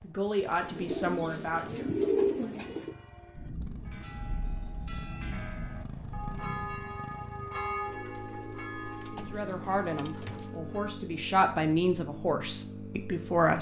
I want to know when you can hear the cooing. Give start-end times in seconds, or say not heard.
0.6-3.0, 7.9-10.6.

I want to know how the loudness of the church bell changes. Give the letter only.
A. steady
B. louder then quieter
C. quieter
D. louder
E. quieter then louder
B.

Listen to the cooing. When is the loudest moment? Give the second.
2 s.